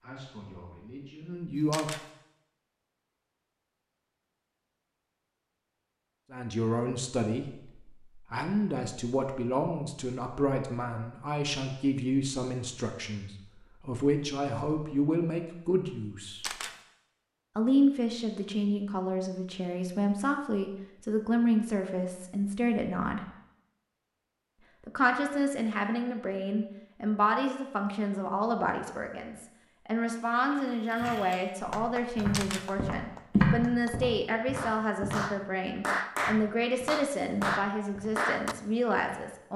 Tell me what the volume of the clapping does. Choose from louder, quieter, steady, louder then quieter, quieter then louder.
louder.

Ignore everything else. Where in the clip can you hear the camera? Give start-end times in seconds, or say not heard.
1.6-2.0, 16.2-16.8, 32.1-32.6.